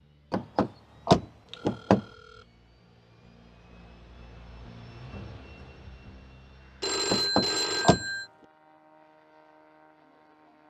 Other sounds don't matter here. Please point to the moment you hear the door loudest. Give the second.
1 s.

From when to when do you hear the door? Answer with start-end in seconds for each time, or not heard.
0.3-2.0, 7.0-8.1.